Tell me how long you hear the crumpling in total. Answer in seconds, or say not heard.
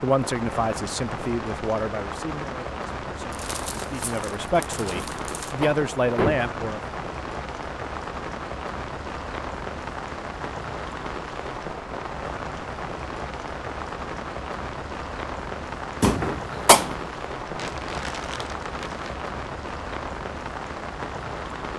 4 s.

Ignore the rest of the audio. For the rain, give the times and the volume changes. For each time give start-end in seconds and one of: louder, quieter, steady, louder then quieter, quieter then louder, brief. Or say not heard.
0.0-21.7 steady.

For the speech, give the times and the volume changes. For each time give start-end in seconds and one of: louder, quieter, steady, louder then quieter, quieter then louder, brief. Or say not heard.
0.0-6.8 quieter then louder.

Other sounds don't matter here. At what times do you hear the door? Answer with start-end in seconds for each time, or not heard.
5.0-6.5, 16.0-16.9.